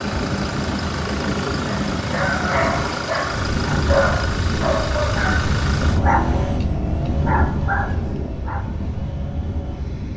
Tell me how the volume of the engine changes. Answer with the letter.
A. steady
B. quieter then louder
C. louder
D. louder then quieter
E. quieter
E.